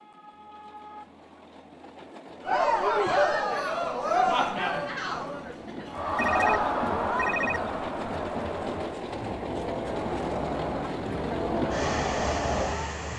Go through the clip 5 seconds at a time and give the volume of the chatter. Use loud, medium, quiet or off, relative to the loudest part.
loud, medium, medium.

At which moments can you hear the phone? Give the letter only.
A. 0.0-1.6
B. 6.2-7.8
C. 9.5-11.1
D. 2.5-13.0
B.